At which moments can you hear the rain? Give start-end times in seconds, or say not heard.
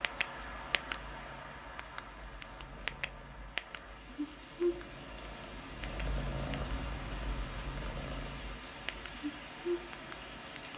0.0-10.7.